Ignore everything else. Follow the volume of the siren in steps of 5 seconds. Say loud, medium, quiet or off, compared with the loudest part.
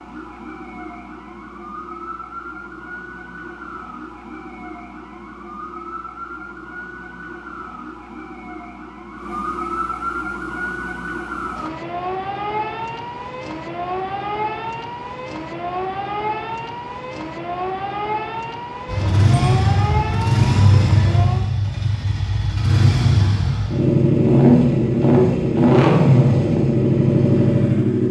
medium, medium, loud, loud, loud, off.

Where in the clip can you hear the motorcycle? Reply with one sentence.
The motorcycle can be heard from 18.9 to 28.0 s.